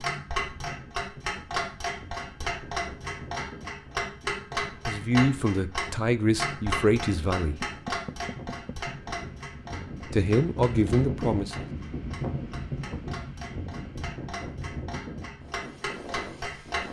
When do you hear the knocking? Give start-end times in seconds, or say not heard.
7.7-8.9.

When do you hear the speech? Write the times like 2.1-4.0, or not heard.
4.8-7.6, 10.1-11.7.